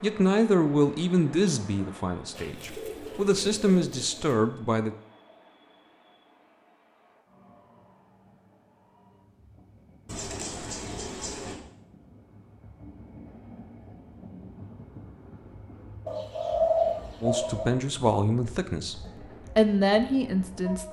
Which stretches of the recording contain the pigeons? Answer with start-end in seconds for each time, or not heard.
2.4-4.3, 10.1-11.6, 16.1-17.8.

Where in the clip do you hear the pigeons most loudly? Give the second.
17 s.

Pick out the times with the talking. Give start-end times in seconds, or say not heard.
0.0-5.0, 17.2-20.8.